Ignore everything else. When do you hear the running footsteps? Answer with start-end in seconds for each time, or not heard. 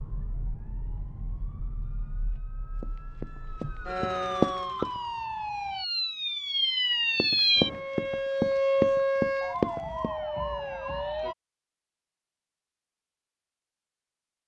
2.8-5.0, 7.2-10.1.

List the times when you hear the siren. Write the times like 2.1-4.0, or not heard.
0.0-11.3.